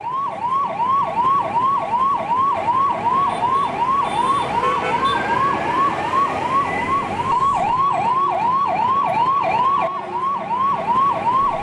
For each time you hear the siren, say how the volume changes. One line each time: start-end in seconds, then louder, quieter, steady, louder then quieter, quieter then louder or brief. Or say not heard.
0.0-11.5 steady.